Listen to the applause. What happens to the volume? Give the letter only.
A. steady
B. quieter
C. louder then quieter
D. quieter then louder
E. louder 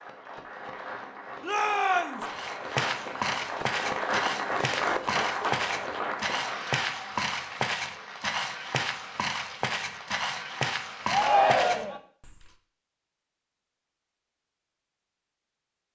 C.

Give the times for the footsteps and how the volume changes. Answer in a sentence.
The footsteps can be heard from 2.2 to 12.5 s, at a steady volume.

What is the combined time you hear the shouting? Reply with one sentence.
The shouting can be heard for 2 seconds in total.